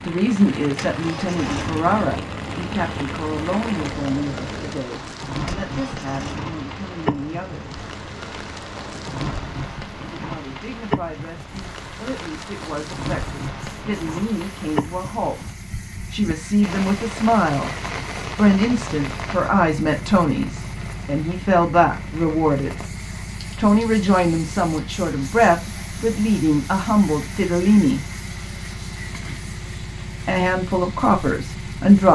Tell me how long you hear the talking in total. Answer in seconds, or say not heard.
25 s.